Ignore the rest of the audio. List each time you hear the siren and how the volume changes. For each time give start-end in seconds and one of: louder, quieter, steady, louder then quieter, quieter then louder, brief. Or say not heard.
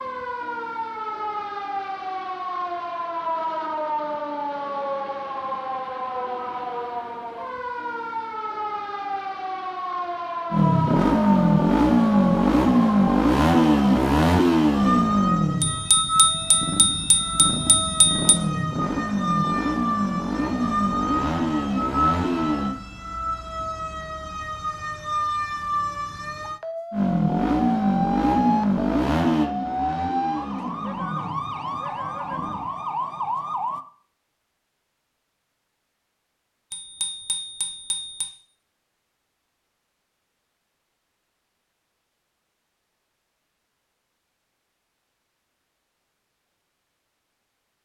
0.0-33.9 steady.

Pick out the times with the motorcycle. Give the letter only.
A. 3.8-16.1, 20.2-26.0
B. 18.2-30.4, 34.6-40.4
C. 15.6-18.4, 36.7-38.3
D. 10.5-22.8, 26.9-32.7
D.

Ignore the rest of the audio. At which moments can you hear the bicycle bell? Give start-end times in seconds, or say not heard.
15.6-18.4, 36.7-38.3.